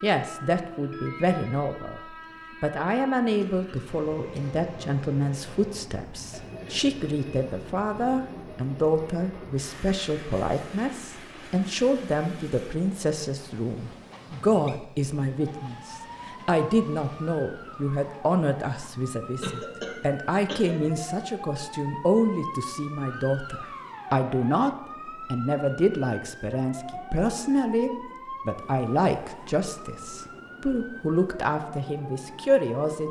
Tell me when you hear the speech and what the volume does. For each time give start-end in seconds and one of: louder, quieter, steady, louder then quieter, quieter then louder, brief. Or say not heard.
0.0-2.0 brief
2.6-33.0 steady.